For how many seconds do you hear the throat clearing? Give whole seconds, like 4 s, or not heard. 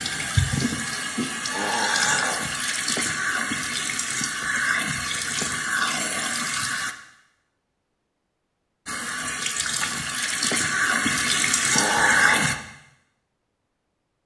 2 s.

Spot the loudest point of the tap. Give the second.
12 s.